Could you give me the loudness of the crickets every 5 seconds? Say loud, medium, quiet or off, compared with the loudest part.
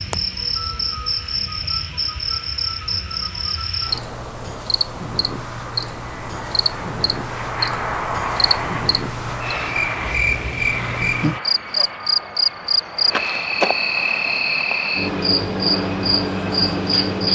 medium, medium, loud, loud.